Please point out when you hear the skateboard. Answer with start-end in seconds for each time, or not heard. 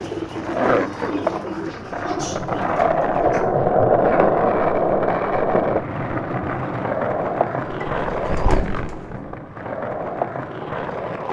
0.0-11.2.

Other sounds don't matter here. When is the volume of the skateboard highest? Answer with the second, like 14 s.
4 s.